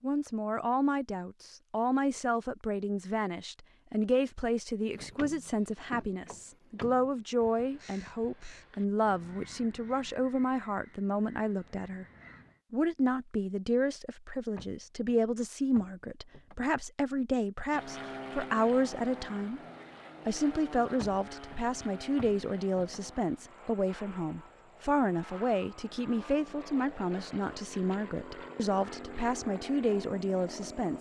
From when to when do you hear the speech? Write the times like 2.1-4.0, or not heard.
0.0-12.1, 12.7-19.6, 20.2-30.9.